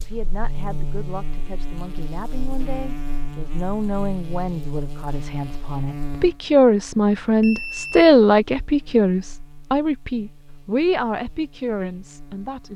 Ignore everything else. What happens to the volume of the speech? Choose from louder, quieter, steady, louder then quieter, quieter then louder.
louder then quieter.